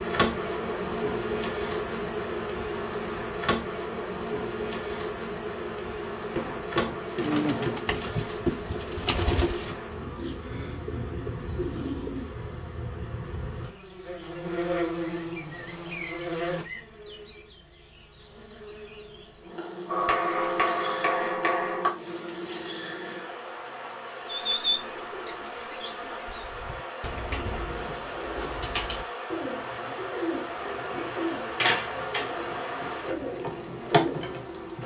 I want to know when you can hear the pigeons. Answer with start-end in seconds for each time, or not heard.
7.1-12.3, 24.2-34.5.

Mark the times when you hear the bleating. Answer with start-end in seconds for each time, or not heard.
not heard.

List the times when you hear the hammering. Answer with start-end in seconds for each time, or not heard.
6.3-7.9, 19.9-21.9.